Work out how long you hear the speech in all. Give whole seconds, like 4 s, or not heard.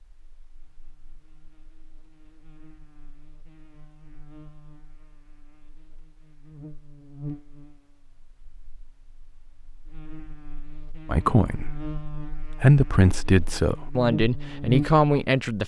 4 s.